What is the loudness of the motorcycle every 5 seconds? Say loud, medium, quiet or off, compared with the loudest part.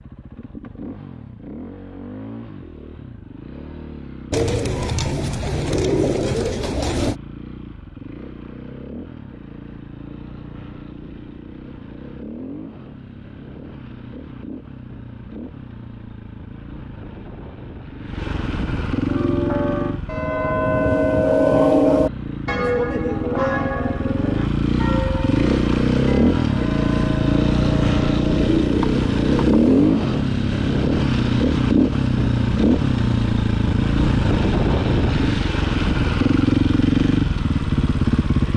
quiet, quiet, quiet, medium, medium, loud, loud, loud.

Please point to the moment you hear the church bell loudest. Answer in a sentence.
The volume of the church bell peaks at 22 seconds.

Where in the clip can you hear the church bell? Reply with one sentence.
The church bell can be heard from 19.1 to 28.5 s.